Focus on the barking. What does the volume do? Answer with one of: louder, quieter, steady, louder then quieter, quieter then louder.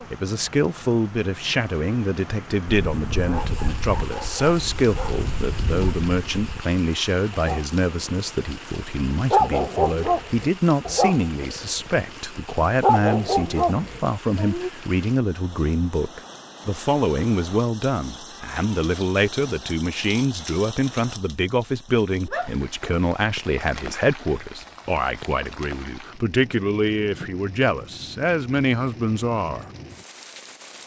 louder.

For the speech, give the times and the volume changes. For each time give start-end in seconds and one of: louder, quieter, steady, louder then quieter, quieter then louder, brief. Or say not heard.
0.1-29.6 steady.